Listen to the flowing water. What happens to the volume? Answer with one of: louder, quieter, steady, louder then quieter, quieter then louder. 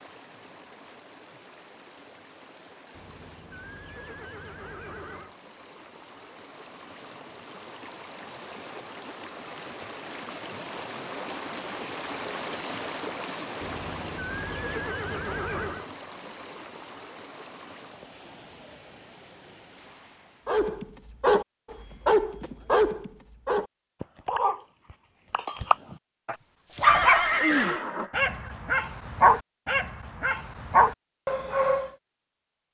louder then quieter.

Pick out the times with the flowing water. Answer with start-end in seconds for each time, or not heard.
0.0-20.6.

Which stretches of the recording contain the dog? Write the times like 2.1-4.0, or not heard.
20.4-31.9.